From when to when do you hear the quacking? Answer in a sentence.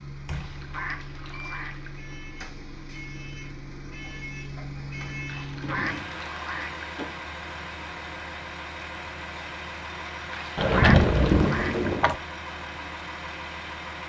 The quacking can be heard from 0.3 to 2.0 s, from 5.2 to 6.8 s and from 10.3 to 11.9 s.